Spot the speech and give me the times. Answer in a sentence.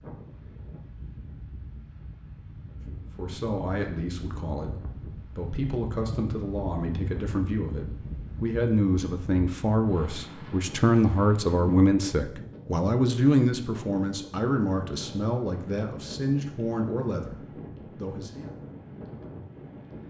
The speech can be heard from 3.1 to 18.5 s.